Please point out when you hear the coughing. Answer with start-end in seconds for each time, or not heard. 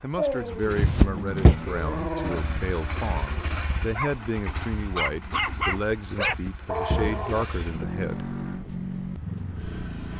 0.8-1.6, 6.2-7.8.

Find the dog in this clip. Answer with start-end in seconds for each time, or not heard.
0.1-7.5.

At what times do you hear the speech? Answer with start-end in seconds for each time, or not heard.
0.0-8.2.